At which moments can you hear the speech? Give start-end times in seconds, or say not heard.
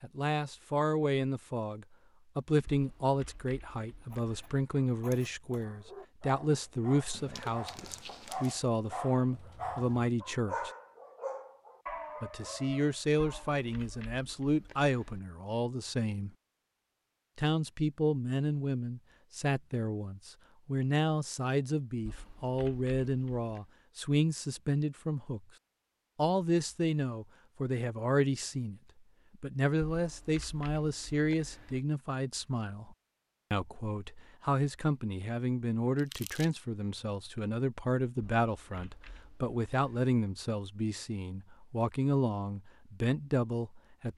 0.0-10.7, 12.2-16.3, 17.4-25.4, 26.1-28.8, 29.4-44.1.